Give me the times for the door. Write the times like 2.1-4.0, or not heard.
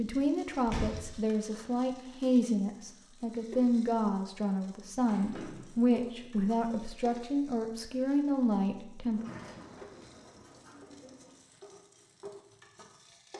0.6-1.2, 5.0-5.8, 9.1-11.4.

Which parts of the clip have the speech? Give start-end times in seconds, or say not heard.
0.0-9.2.